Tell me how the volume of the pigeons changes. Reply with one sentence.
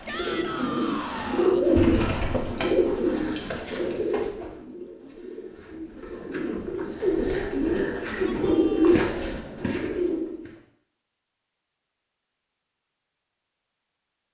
The volume of the pigeons goes down, then up.